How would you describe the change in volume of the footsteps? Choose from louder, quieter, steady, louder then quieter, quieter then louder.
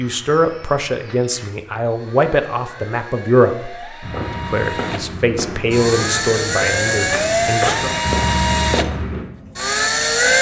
louder.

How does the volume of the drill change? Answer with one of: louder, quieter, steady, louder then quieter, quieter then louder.
louder.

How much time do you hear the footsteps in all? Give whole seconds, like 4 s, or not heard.
5 s.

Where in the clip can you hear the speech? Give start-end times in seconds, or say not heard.
0.0-7.9.